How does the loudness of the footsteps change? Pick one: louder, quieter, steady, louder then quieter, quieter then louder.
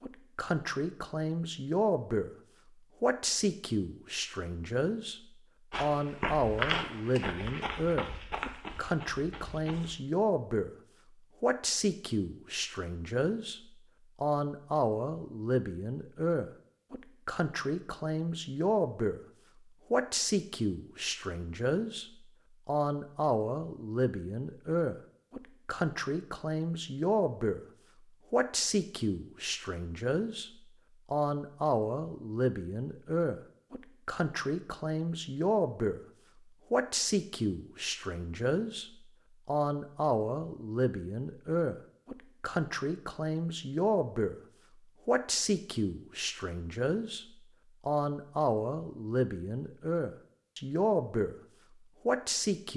quieter.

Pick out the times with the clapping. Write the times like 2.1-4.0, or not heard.
not heard.